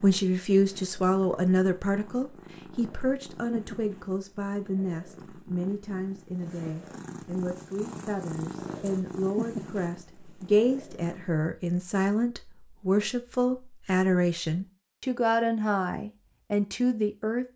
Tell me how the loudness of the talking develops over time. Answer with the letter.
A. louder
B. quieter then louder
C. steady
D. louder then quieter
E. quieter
B.